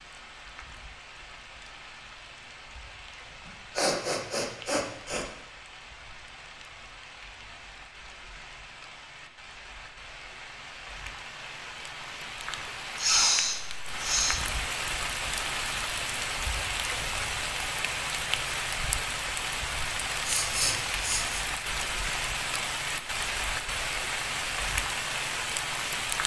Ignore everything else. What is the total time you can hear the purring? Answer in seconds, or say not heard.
not heard.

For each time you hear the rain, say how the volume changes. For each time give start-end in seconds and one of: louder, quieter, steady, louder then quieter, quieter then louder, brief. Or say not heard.
0.0-26.2 louder.